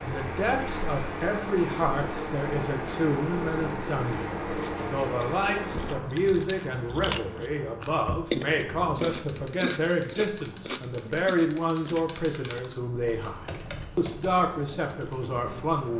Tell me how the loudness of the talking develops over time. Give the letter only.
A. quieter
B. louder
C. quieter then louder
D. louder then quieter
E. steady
E.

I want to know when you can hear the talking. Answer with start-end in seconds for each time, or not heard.
0.0-15.9.